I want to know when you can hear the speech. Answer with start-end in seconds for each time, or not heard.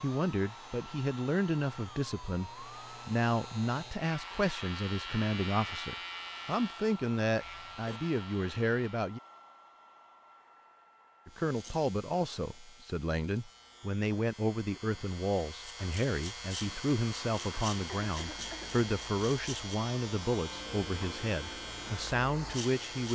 0.0-9.2, 11.2-23.1.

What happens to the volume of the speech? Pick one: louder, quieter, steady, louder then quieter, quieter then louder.
steady.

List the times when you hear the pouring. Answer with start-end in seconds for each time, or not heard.
not heard.